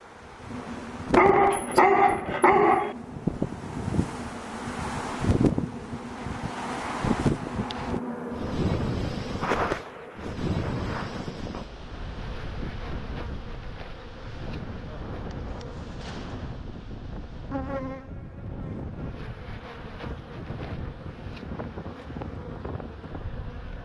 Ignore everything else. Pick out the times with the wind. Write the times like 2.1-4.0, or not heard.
0.0-23.8.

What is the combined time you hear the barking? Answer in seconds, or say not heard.
2 s.